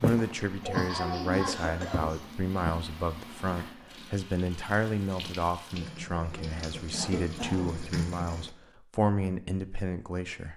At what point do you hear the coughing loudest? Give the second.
1 s.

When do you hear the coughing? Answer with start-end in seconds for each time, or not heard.
0.6-2.2, 6.9-7.8.